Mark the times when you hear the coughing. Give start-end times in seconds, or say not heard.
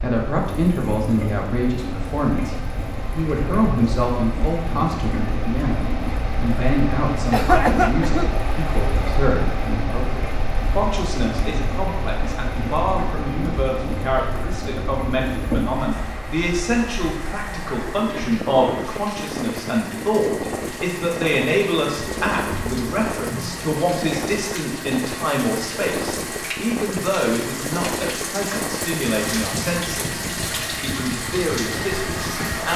7.3-8.5.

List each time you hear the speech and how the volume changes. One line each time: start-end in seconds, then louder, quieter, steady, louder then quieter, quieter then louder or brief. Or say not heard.
0.0-32.7 steady.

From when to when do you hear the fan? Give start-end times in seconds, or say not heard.
0.0-32.7.